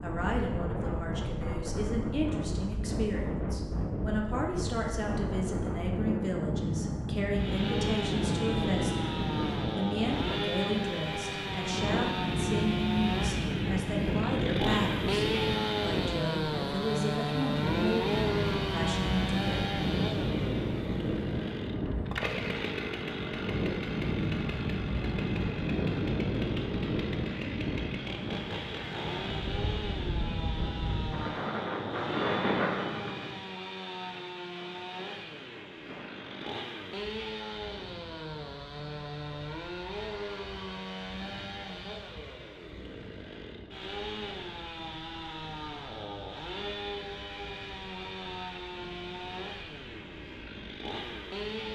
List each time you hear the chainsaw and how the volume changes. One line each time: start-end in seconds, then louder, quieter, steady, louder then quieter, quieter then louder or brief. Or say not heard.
7.3-51.6 quieter.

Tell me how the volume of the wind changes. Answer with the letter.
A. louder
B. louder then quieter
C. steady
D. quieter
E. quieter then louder
D.